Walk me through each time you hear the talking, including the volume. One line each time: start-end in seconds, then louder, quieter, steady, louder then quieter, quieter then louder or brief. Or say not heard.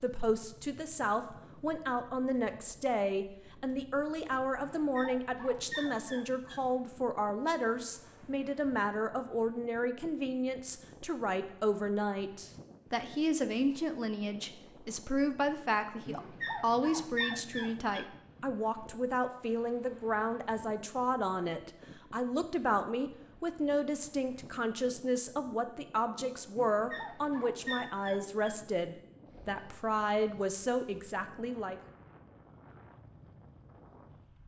0.0-31.8 steady.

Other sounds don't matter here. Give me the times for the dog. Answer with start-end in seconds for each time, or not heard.
4.6-6.6, 16.1-18.1, 26.6-28.6.